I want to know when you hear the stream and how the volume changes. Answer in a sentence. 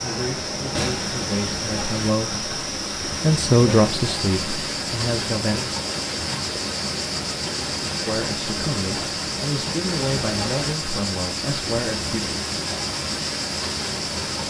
You can hear the stream from 0.0 to 14.4 s, at a steady volume.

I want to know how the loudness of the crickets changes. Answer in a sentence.
The volume of the crickets stays about the same.